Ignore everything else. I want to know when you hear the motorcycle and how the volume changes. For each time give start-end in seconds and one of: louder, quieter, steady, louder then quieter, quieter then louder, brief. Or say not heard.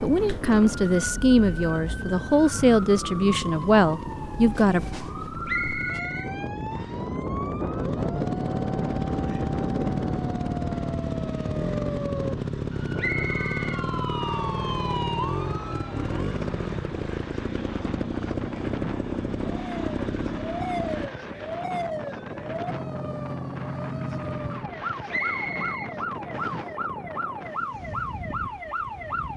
0.1-21.1 louder.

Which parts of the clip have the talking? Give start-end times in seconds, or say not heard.
0.0-4.8.